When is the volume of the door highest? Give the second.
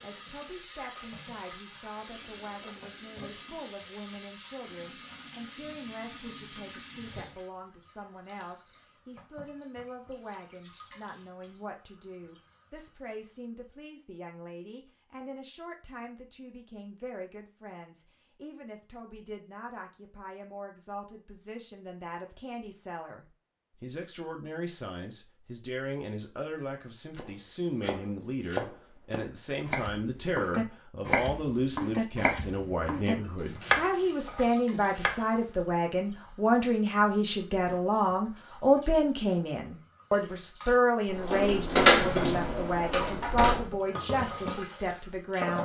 42 s.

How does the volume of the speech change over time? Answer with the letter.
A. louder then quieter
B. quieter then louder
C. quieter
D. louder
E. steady
D.